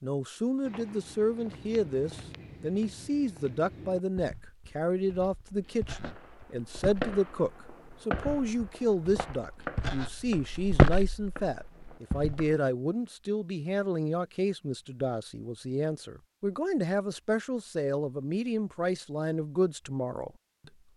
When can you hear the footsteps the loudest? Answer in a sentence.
The loudest moment of the footsteps is at 11 seconds.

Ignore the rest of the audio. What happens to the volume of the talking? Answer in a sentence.
The volume of the talking stays about the same.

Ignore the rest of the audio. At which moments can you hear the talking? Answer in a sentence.
The talking can be heard from 0.0 to 20.7 s.